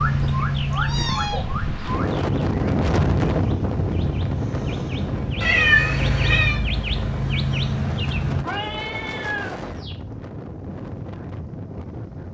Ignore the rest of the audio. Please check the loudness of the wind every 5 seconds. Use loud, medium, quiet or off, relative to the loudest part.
loud, medium, medium.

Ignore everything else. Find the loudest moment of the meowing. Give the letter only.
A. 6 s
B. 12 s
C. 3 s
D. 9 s
A.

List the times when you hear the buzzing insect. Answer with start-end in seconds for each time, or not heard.
not heard.